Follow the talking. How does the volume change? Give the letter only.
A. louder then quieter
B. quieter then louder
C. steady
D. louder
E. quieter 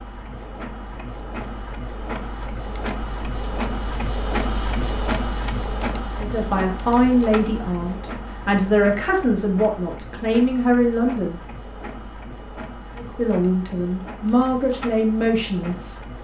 C.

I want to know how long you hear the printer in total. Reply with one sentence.
The printer can be heard for 16 seconds in total.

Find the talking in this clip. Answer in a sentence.
You can hear the talking from 6.2 to 11.3 s and from 12.9 to 15.9 s.